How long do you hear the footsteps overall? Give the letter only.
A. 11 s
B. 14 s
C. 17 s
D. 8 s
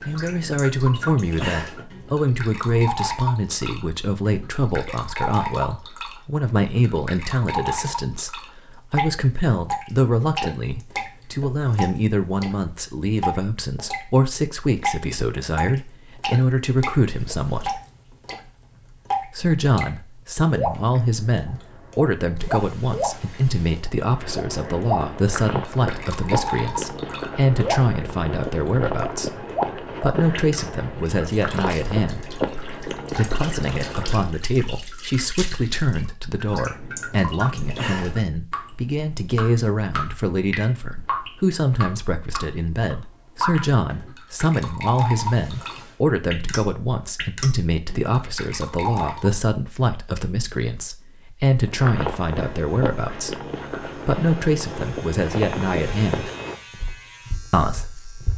C.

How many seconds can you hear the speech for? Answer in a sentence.
You can hear the speech for 55 seconds altogether.